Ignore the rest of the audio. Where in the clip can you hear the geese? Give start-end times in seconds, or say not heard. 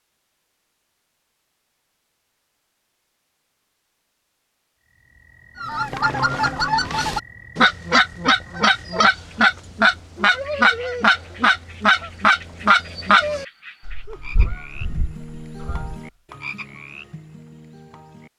5.6-16.1.